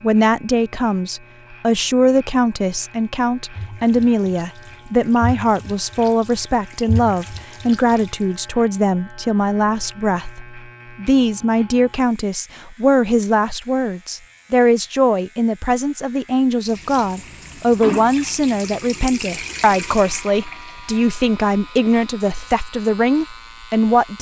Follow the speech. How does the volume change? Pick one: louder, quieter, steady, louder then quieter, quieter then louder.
steady.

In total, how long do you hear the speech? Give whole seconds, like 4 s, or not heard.
24 s.